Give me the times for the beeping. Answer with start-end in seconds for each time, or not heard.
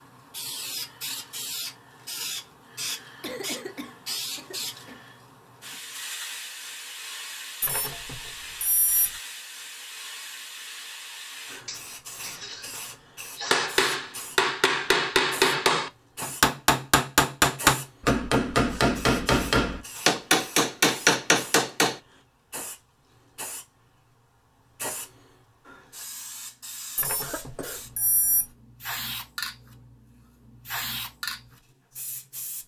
7.6-9.1, 26.9-28.4.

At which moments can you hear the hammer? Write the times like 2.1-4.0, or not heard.
13.4-22.0.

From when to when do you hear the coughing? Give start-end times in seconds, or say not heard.
3.2-5.0, 11.7-13.7, 27.2-27.8.